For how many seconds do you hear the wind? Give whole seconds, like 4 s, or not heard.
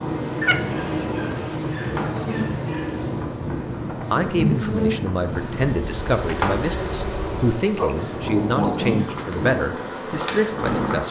11 s.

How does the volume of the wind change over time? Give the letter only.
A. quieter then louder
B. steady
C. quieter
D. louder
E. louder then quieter
B.